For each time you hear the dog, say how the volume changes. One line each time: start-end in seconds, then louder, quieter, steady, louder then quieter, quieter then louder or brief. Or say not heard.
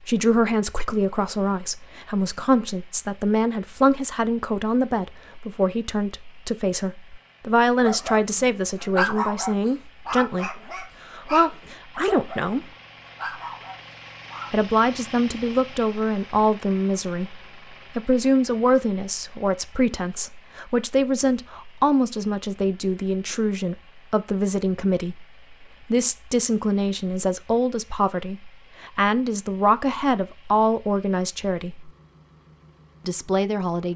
7.8-14.6 quieter.